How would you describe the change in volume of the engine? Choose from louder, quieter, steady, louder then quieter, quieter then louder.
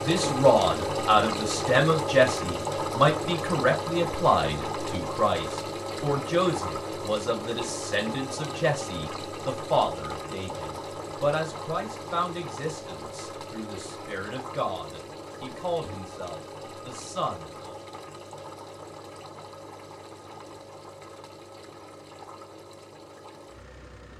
quieter.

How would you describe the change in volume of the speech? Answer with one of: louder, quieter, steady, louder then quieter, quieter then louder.
quieter.